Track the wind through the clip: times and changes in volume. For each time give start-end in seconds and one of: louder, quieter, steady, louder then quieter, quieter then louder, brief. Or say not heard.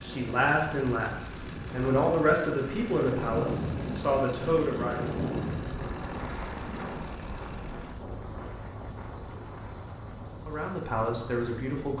0.0-11.9 louder then quieter.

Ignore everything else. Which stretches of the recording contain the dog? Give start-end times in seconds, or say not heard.
not heard.